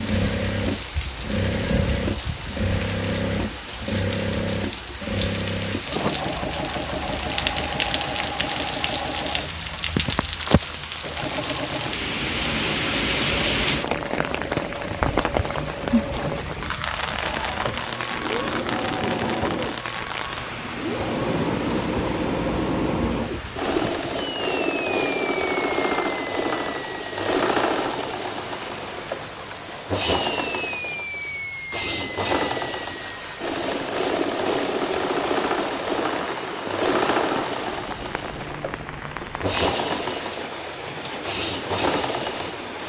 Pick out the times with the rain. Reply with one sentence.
The rain can be heard from 0.0 to 42.8 s.